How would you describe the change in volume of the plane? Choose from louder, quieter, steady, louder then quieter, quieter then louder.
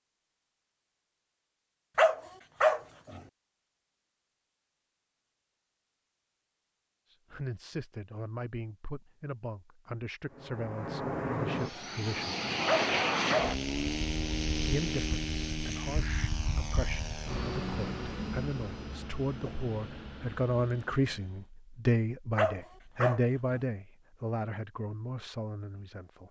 quieter.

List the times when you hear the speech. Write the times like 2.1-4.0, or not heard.
7.1-12.3, 14.7-26.2.